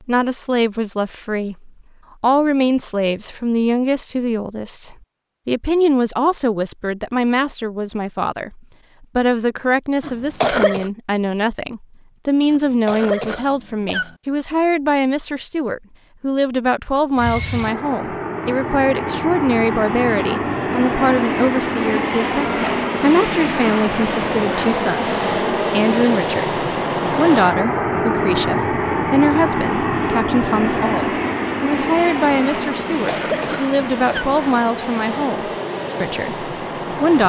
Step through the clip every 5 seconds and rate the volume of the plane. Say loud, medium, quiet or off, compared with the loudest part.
off, off, off, medium, loud, loud, loud, medium.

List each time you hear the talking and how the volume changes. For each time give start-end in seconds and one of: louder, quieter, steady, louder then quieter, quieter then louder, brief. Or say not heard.
0.1-37.2 steady.